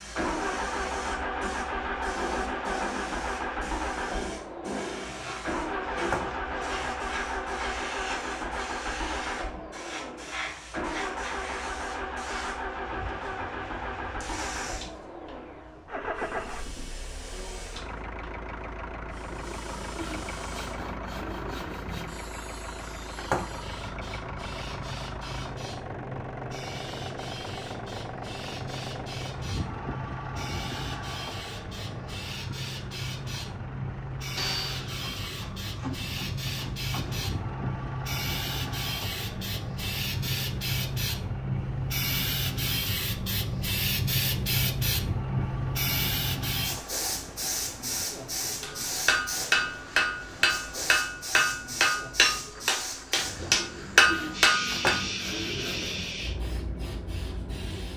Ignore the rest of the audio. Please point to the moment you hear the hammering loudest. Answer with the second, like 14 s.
54 s.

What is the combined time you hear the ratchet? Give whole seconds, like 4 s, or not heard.
not heard.